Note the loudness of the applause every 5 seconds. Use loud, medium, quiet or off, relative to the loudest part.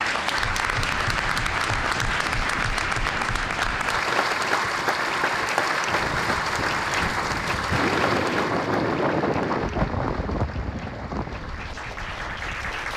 loud, loud, medium.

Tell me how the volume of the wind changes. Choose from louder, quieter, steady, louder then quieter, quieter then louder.
louder then quieter.